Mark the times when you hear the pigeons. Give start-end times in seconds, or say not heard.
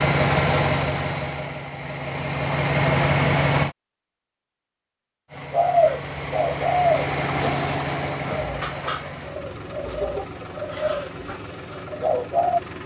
5.5-12.6.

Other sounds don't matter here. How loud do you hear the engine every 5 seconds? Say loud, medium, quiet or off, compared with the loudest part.
loud, medium, quiet.